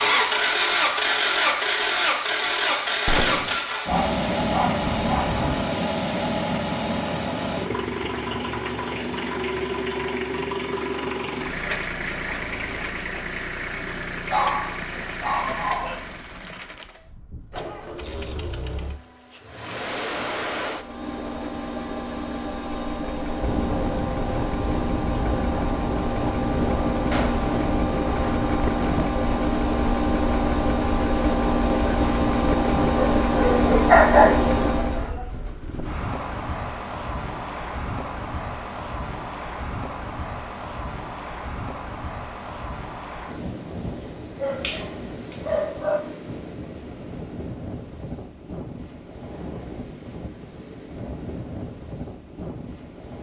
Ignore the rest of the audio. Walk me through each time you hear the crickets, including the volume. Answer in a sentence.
The crickets can't be heard in this clip.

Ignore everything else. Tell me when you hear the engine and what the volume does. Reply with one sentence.
You can hear the engine from 0.0 to 35.1 s, getting quieter then louder.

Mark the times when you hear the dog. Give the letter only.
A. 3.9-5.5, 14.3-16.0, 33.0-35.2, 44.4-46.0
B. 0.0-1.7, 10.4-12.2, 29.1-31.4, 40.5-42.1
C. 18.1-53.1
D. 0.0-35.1
A.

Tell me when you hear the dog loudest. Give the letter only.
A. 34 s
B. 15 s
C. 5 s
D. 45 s
A.